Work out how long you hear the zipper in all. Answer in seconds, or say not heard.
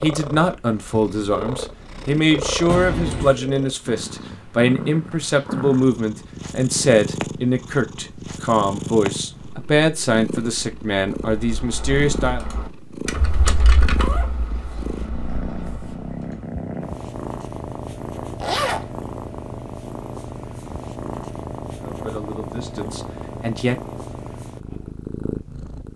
2 s.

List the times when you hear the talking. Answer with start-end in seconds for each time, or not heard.
0.0-12.4, 21.9-23.8.